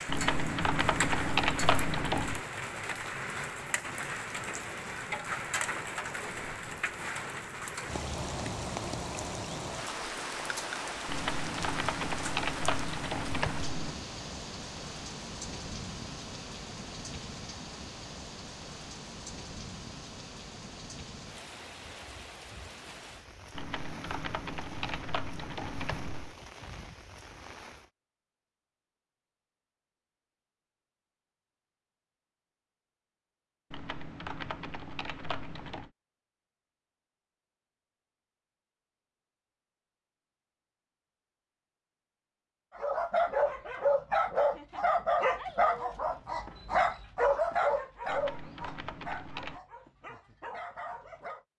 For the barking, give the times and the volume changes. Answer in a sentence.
The barking can be heard from 42.8 to 51.4 s, getting quieter.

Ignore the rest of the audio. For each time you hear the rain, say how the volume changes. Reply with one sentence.
The rain can be heard from 0.0 to 27.9 s, getting quieter.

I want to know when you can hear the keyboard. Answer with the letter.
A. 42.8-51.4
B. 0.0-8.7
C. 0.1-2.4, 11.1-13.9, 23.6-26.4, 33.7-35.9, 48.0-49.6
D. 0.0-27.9
C.